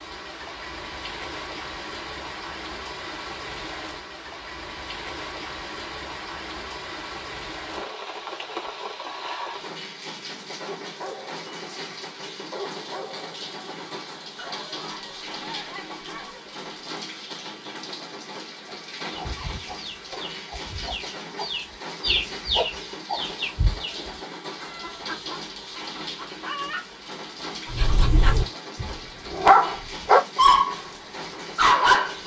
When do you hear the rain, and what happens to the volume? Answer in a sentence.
The rain can be heard from 0.0 to 32.2 s, at a steady volume.